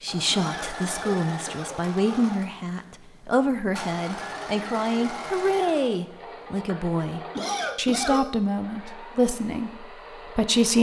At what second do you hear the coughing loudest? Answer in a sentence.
The loudest moment of the coughing is at 8 seconds.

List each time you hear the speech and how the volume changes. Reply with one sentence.
You can hear the speech from 0.0 to 10.7 s, at a steady volume.